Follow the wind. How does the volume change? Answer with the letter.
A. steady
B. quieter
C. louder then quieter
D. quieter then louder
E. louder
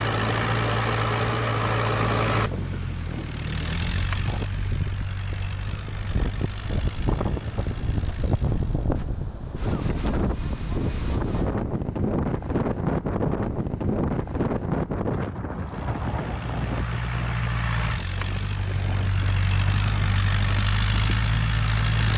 C.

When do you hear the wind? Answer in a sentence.
You can hear the wind from 0.0 to 22.1 s.